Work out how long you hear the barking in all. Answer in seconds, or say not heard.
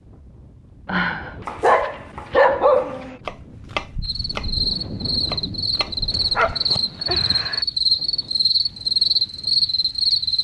4 s.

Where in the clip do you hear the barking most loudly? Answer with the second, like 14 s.
3 s.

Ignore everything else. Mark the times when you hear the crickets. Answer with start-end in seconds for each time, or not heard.
4.0-10.4.